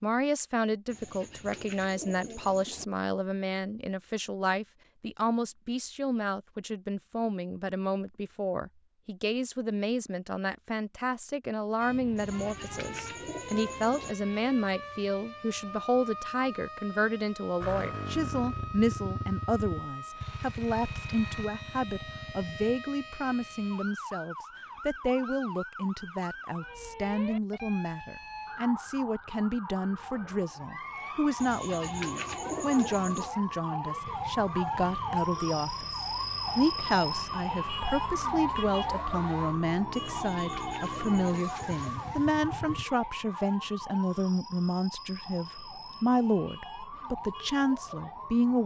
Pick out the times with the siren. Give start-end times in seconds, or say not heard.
11.8-48.6.